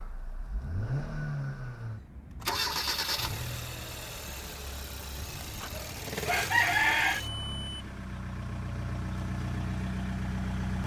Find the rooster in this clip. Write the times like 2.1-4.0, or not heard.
5.7-7.2.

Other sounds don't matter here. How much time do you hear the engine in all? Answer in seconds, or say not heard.
11 s.